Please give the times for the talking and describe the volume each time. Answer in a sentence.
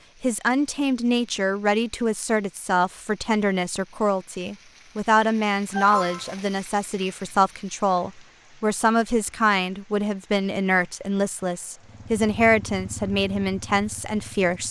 You can hear the talking from 0.2 to 14.6 s, at a steady volume.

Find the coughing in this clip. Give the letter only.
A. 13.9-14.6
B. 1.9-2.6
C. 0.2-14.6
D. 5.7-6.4
D.